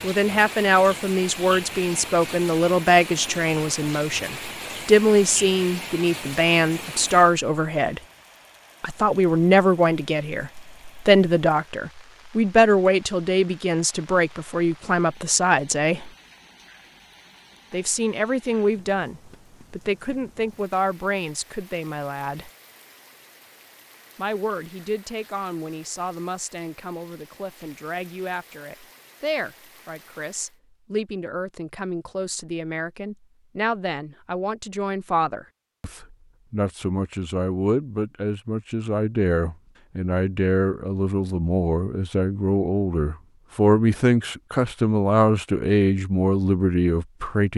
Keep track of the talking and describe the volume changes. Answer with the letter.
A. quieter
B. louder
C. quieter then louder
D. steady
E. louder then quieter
C.